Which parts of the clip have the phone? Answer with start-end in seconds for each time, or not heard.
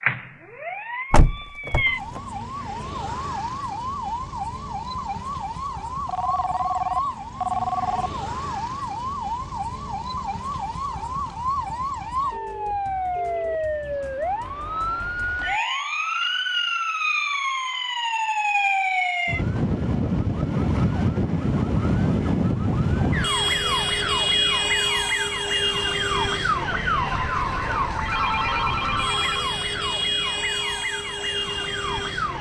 6.0-8.1, 12.3-13.8, 28.1-29.4.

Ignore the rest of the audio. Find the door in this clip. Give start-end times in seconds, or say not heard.
1.1-2.2.